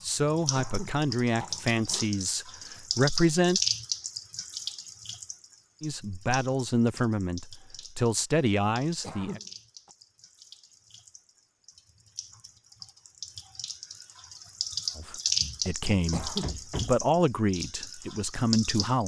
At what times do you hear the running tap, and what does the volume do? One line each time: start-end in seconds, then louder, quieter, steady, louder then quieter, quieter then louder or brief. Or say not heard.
0.0-19.0 quieter then louder.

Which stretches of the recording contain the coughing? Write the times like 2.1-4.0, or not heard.
0.6-2.1, 9.0-9.9, 16.1-16.6.